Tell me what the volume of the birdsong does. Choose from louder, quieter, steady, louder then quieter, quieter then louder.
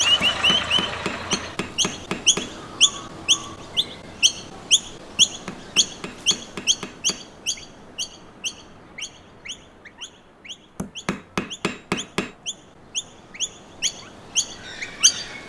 quieter then louder.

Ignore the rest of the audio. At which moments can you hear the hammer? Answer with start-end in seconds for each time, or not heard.
0.2-2.5, 5.2-7.2, 10.8-12.3.